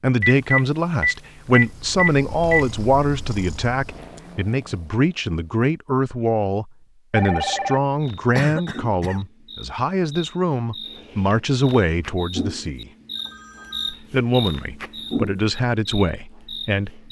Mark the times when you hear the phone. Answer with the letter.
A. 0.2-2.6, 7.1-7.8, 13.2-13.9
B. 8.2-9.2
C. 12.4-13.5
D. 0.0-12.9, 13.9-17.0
A.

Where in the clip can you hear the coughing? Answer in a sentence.
The coughing can be heard from 8.2 to 9.2 s.